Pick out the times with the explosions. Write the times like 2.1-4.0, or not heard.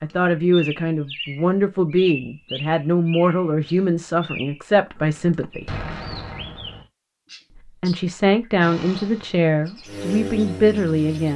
5.7-6.8.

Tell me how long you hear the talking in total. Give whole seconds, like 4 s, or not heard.
9 s.